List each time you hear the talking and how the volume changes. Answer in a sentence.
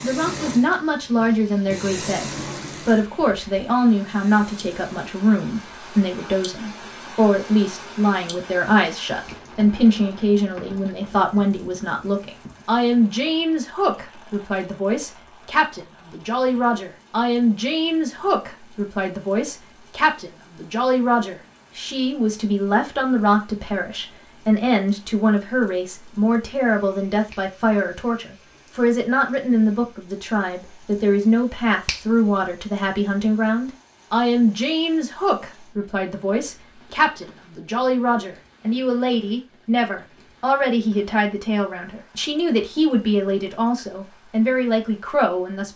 You can hear the talking from 0.0 to 45.7 s, at a steady volume.